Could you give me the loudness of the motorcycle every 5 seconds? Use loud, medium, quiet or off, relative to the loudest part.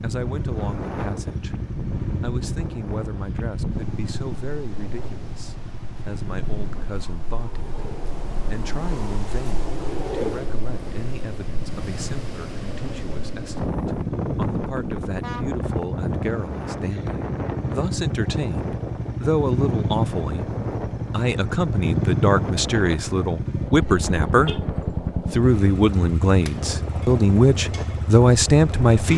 medium, medium, medium, loud, loud, medium.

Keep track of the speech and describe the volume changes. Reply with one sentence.
The loudness of the speech goes up.